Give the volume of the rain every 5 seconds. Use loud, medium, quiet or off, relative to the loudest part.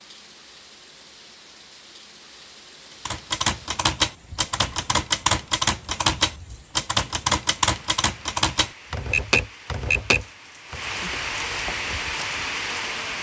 quiet, quiet, loud.